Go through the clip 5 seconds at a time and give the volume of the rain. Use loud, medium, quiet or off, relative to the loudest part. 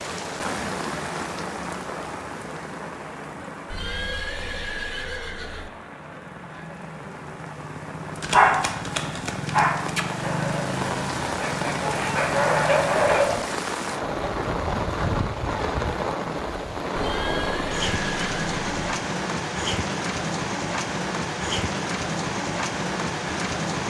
medium, medium, loud, loud, loud.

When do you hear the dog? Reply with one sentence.
You can hear the dog from 8.2 to 13.4 s.